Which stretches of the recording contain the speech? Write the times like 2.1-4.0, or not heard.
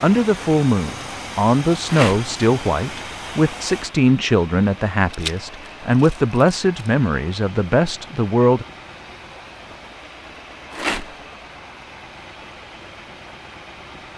0.0-8.7.